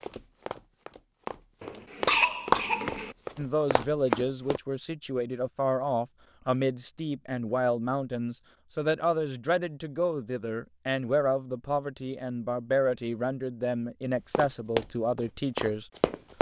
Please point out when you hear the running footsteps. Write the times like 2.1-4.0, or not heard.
0.0-4.6, 14.3-16.3.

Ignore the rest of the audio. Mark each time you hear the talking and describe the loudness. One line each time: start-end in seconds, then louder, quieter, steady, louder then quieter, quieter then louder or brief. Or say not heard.
3.4-15.9 steady.